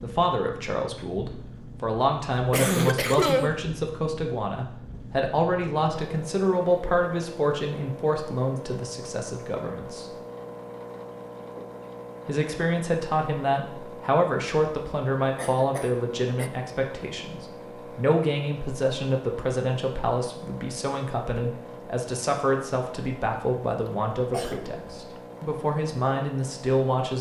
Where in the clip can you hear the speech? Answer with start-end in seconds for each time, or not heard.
0.0-10.2, 12.2-27.1.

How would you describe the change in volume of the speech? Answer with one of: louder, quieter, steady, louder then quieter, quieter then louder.
steady.